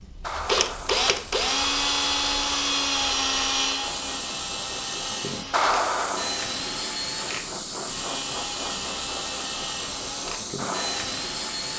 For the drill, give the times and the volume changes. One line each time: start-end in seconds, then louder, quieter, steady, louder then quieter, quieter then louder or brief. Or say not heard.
0.0-11.7 quieter.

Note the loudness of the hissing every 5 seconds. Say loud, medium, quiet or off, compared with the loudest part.
medium, loud, loud.